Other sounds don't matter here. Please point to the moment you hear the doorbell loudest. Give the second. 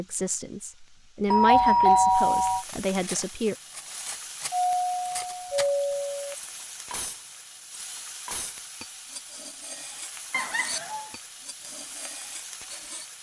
2 s.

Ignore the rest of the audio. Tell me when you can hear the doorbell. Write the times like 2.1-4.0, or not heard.
1.3-2.6, 4.5-6.3, 10.3-11.1.